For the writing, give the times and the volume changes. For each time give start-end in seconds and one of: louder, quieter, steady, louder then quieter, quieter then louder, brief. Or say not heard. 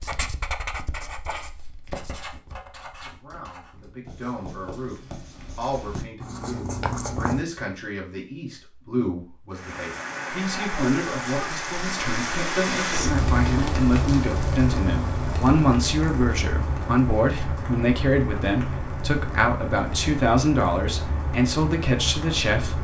0.0-7.5 quieter then louder.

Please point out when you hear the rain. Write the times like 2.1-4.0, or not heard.
9.5-22.8.